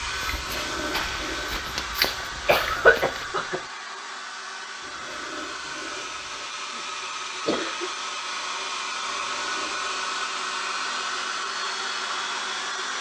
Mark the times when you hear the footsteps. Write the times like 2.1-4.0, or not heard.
0.0-3.4.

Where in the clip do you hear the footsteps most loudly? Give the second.
2 s.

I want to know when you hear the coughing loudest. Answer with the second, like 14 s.
3 s.